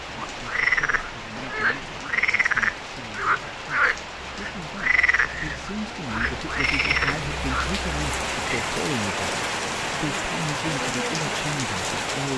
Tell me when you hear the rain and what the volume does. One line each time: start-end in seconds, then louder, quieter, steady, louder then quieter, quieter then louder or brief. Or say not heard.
0.0-12.3 louder.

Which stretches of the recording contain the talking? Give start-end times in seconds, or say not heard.
0.2-12.3.